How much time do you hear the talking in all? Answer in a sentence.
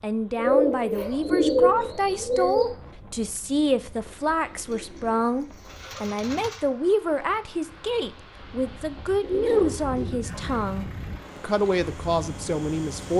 You can hear the talking for 13 seconds altogether.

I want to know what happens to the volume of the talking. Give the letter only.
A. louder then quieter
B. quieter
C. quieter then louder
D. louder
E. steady
E.